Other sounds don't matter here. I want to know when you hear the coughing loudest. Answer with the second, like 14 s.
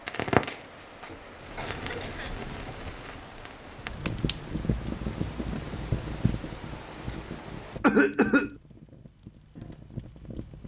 8 s.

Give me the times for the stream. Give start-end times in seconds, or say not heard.
0.0-7.8.